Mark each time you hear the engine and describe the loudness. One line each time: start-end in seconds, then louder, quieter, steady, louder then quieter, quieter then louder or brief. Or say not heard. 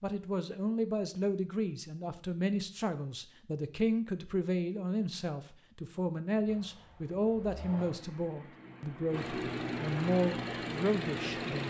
6.5-11.6 louder.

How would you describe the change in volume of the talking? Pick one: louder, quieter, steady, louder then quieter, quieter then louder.
steady.